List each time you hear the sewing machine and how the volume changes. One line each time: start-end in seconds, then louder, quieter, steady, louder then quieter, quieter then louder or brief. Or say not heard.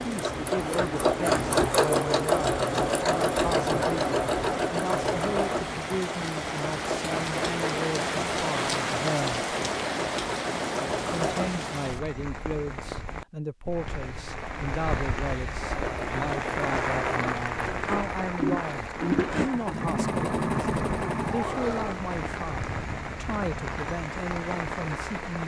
0.0-11.8 quieter
15.6-22.0 louder.